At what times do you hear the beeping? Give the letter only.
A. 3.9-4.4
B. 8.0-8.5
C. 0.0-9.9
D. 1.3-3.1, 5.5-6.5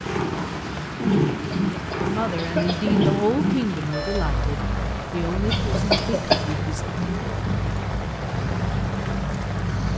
A.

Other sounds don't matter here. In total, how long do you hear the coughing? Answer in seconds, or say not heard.
3 s.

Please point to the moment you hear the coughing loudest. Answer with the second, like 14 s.
6 s.